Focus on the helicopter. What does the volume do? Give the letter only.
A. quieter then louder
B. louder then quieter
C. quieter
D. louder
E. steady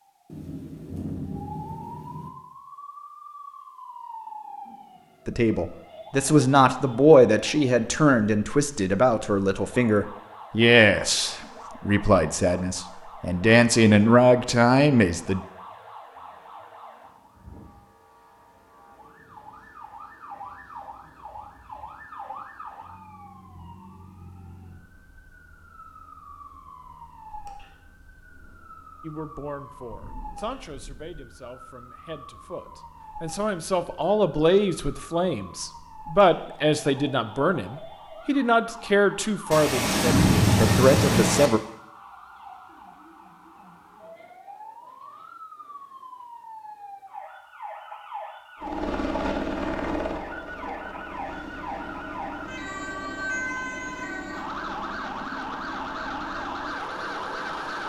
C.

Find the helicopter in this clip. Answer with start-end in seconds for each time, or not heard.
48.6-57.8.